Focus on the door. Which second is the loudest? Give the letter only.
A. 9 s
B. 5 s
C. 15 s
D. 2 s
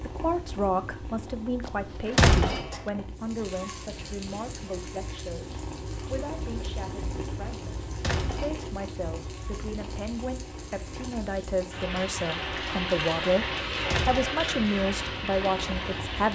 D.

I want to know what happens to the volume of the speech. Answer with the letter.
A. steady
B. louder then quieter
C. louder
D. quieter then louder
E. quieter
D.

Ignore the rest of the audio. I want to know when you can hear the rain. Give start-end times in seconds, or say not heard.
3.1-16.3.